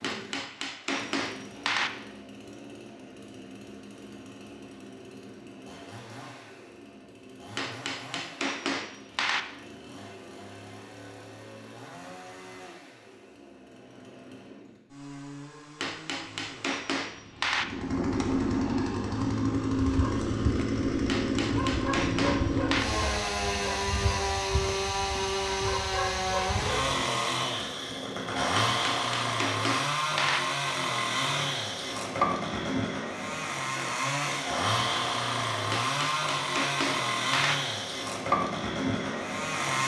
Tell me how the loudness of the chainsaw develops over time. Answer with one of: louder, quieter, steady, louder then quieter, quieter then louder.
louder.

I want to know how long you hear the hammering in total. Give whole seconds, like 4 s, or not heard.
11 s.